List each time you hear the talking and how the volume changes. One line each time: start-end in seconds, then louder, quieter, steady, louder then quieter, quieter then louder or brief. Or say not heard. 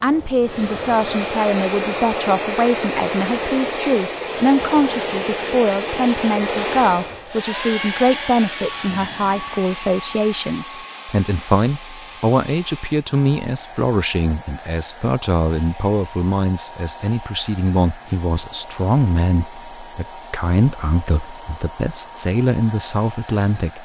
0.0-23.7 steady.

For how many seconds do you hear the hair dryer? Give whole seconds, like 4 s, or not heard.
24 s.